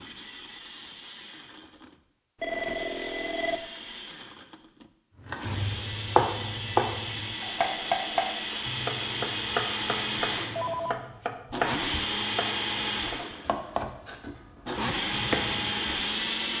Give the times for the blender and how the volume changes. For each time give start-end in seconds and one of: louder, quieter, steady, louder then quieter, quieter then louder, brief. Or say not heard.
0.0-16.5 louder.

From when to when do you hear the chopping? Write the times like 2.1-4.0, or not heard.
5.2-15.8.